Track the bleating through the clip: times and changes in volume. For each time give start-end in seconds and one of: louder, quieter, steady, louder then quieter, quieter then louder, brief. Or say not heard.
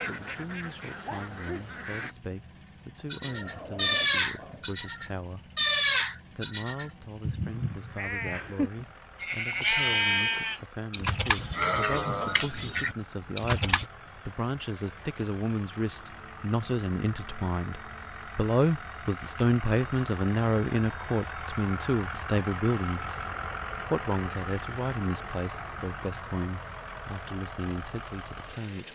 3.1-13.8 quieter then louder.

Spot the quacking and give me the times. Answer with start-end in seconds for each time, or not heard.
0.0-2.1.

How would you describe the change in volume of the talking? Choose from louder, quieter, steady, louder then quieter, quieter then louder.
louder then quieter.